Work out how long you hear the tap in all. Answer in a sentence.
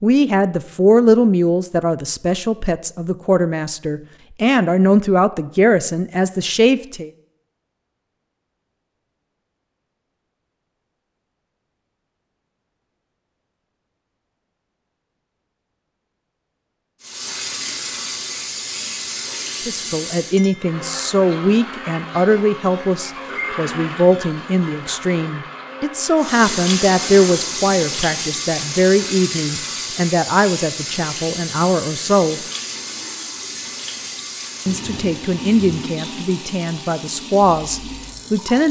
The tap can be heard for 16 seconds in total.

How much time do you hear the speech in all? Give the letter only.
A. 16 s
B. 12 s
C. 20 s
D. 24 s
D.